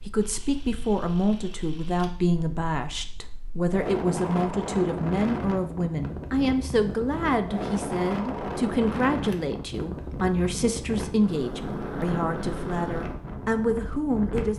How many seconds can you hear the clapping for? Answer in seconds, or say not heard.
not heard.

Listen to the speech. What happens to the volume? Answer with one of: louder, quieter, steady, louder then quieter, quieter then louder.
steady.